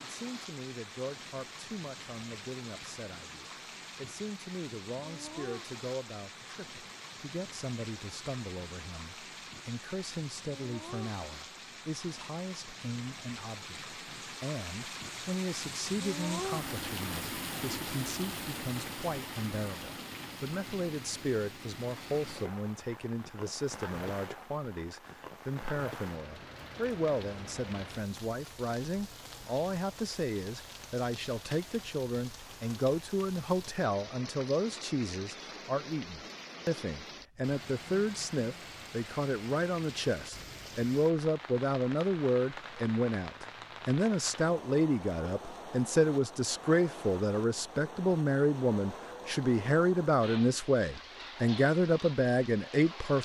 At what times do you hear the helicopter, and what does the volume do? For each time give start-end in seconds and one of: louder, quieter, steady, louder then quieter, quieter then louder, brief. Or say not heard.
not heard.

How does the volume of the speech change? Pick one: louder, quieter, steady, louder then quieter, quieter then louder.
louder.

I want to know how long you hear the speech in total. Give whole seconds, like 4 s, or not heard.
53 s.